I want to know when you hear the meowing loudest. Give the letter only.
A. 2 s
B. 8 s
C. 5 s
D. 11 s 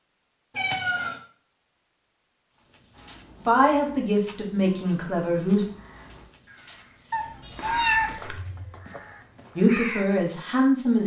B.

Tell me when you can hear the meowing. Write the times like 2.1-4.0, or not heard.
0.6-1.2, 7.1-8.2.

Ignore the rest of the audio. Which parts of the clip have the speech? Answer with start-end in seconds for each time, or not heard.
3.4-5.7, 9.6-11.0.